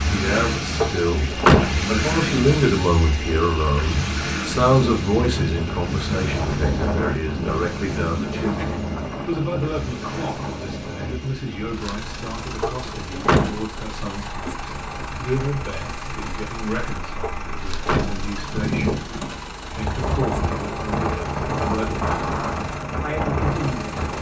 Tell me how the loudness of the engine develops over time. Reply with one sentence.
The loudness of the engine goes down.